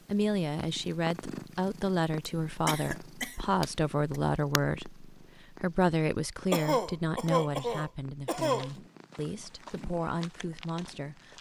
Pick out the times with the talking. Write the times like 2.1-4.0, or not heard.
0.1-11.3.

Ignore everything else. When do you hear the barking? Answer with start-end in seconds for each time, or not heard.
not heard.